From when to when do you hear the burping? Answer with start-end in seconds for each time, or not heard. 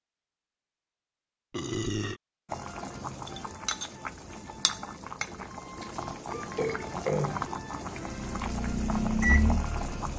1.5-2.2, 5.8-7.4.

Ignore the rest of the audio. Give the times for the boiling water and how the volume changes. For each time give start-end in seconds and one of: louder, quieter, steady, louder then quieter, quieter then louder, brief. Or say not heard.
2.5-10.1 steady.